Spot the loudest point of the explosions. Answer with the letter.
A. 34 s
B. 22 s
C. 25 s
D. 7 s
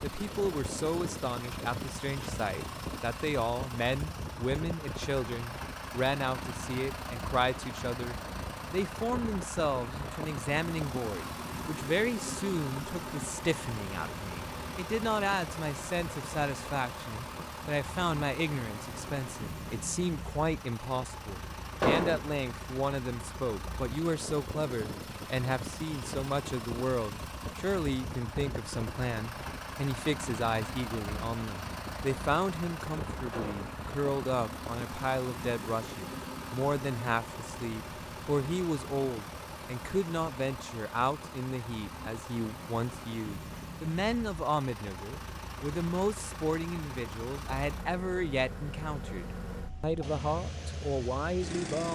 B.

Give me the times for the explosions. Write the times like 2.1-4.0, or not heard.
21.8-22.2, 33.3-33.8.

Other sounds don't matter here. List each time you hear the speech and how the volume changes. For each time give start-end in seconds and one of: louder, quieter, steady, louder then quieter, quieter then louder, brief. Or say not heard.
0.0-51.9 steady.